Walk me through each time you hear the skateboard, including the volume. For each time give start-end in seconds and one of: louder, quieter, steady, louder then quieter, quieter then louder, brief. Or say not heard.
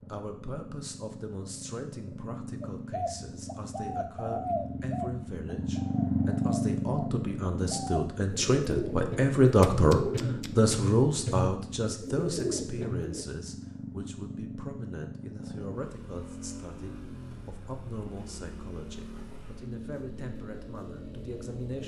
not heard.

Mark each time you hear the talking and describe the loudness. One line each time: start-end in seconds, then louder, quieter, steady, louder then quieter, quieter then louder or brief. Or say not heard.
0.1-21.8 louder then quieter.